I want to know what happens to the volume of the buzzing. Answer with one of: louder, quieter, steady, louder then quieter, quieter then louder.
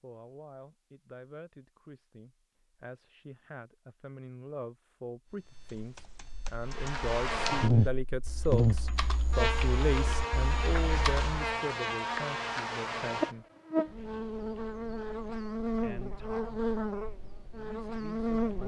quieter.